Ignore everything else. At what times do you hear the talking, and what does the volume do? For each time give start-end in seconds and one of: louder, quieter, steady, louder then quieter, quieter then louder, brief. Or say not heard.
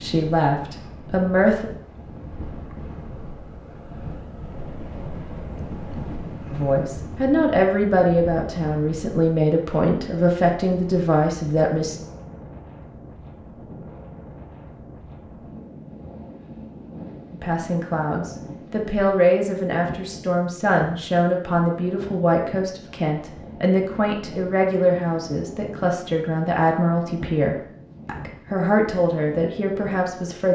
0.0-1.7 brief
6.5-11.9 steady
17.3-30.5 steady.